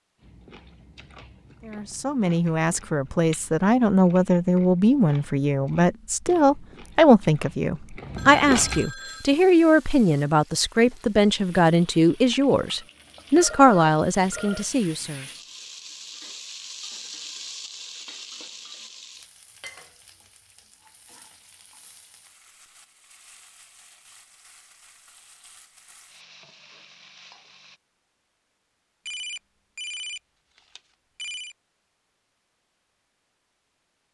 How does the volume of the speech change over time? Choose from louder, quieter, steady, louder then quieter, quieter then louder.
steady.